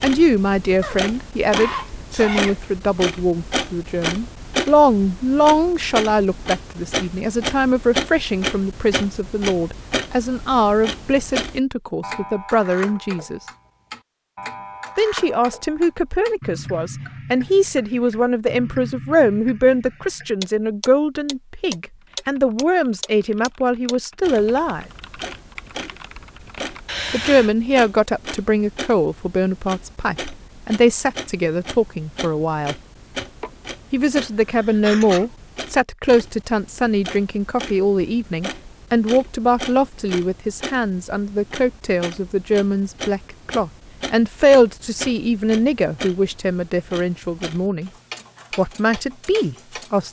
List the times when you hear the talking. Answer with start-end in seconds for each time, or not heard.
0.0-13.4, 14.9-24.9, 27.1-32.8, 33.9-47.9, 48.5-50.0.